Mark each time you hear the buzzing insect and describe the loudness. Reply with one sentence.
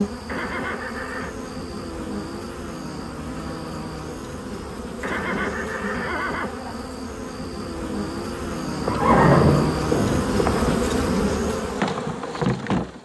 The buzzing insect can be heard from 0.0 to 13.0 s, getting louder.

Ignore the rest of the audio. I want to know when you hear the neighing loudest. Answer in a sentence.
The volume of the neighing peaks at 9 seconds.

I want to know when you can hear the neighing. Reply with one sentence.
You can hear the neighing from 0.2 to 1.4 s, from 5.0 to 6.8 s and from 8.8 to 10.8 s.